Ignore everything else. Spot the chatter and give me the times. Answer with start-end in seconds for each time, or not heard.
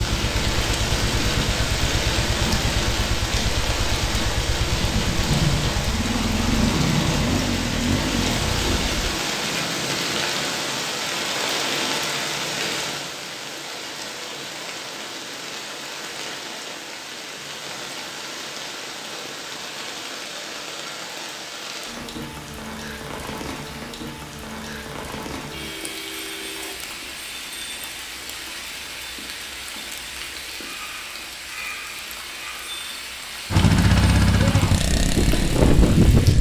not heard.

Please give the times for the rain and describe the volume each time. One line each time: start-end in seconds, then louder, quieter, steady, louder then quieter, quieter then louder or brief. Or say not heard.
0.0-36.3 quieter.